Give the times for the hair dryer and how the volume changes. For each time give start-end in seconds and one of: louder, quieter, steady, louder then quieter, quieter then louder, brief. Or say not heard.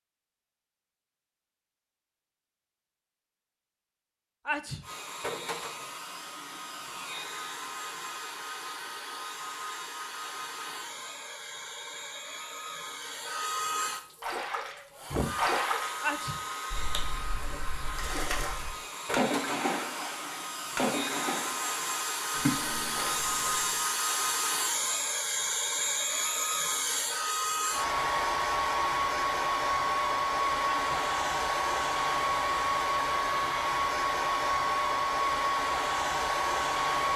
4.8-37.1 louder.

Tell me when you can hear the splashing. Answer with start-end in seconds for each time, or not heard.
14.2-16.0, 16.7-23.9.